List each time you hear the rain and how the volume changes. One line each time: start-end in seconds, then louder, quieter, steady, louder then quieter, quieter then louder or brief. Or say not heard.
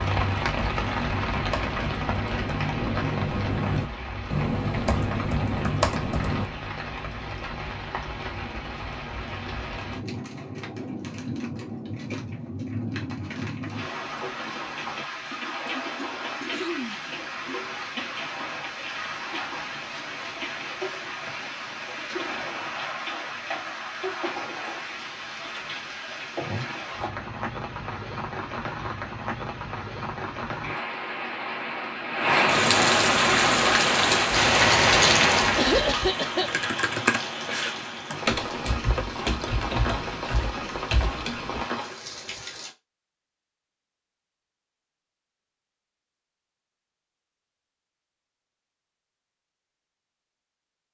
0.0-42.7 louder.